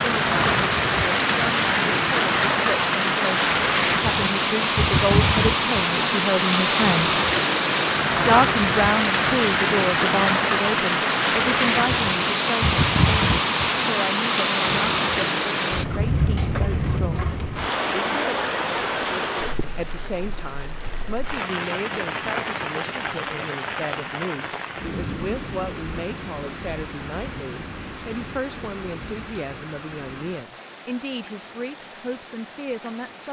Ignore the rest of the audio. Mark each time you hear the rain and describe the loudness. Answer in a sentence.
The rain can be heard from 0.0 to 33.2 s, getting quieter.